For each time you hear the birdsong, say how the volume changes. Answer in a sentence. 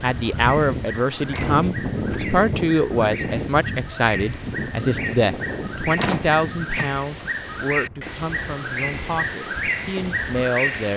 You can hear the birdsong from 0.0 to 10.9 s, getting louder.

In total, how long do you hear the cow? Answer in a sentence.
The cow can't be heard in this clip.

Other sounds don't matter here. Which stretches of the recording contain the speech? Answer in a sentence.
You can hear the speech from 0.0 to 10.9 s.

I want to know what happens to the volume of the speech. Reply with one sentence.
The loudness of the speech goes down.